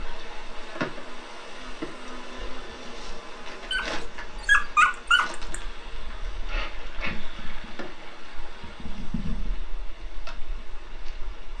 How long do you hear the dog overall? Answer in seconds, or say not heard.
2 s.